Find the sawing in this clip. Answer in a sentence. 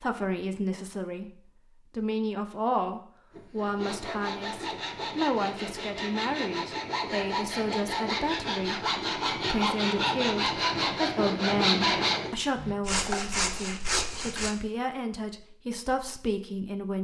The sawing can be heard from 3.3 to 14.6 s.